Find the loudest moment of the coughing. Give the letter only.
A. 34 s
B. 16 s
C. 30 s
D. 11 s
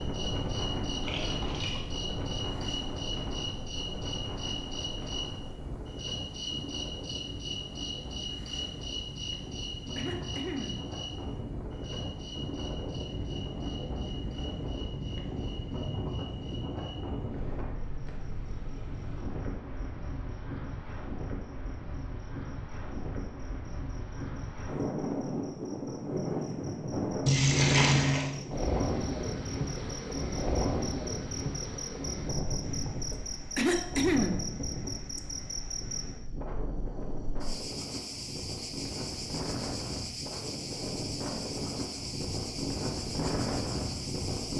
A.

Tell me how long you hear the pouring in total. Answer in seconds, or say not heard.
2 s.